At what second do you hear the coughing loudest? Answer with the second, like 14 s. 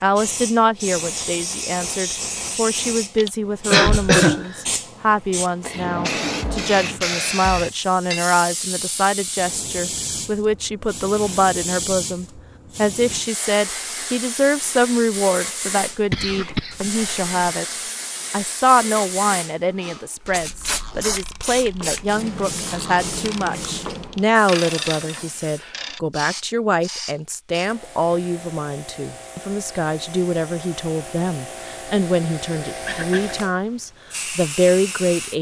4 s.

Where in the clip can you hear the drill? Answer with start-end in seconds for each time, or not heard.
not heard.